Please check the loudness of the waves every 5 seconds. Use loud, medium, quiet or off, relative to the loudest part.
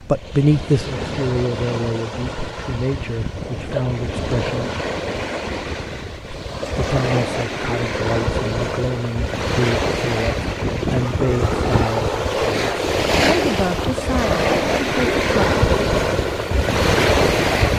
medium, medium, loud, loud.